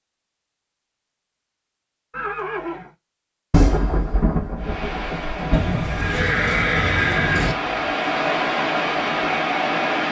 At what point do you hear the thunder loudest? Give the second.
4 s.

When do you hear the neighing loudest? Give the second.
7 s.